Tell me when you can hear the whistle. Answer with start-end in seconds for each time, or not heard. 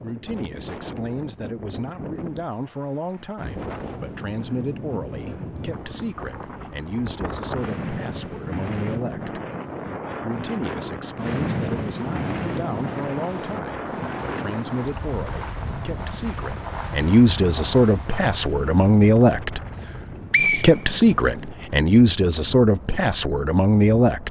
19.8-21.4.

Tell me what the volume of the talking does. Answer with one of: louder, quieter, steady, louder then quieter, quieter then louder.
louder.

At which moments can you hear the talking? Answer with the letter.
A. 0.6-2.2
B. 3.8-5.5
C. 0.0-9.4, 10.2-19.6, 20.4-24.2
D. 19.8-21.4
C.